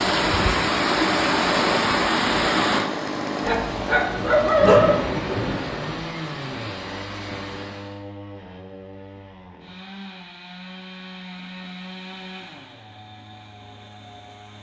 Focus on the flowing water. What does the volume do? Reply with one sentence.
The loudness of the flowing water goes down.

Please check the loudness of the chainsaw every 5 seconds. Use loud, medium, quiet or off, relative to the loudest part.
loud, medium, medium.